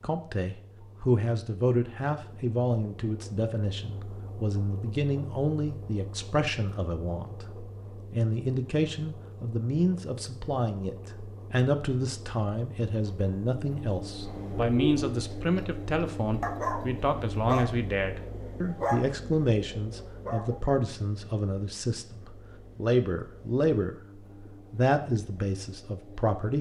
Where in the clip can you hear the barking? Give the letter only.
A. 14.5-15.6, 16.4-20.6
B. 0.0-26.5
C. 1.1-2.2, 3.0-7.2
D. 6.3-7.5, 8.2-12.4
A.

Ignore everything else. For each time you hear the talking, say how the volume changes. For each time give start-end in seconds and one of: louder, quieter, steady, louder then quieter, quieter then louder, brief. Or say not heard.
0.0-26.5 steady.